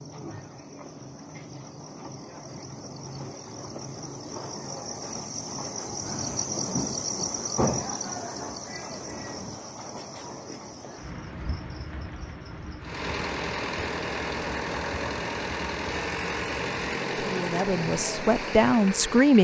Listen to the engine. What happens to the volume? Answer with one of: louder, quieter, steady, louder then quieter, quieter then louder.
steady.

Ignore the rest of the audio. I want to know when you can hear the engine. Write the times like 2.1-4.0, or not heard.
12.8-19.3.